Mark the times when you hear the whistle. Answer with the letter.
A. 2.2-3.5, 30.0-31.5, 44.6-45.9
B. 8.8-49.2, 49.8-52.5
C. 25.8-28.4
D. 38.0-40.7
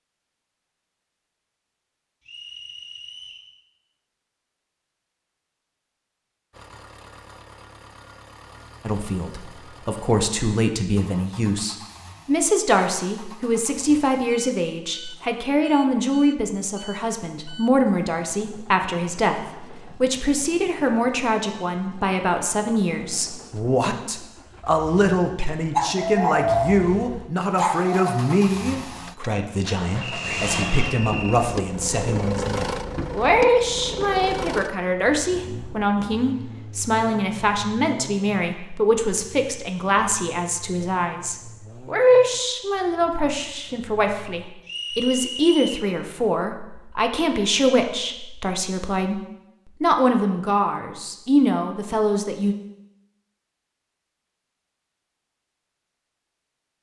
A.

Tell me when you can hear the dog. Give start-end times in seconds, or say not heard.
25.8-28.4.